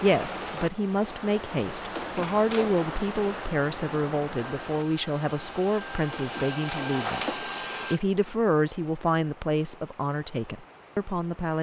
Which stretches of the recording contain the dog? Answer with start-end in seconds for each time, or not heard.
not heard.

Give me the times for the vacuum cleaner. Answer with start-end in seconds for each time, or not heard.
4.3-8.0.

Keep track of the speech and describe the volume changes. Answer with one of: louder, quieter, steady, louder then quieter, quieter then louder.
steady.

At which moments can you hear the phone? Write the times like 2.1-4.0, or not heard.
1.9-2.9, 6.1-7.4.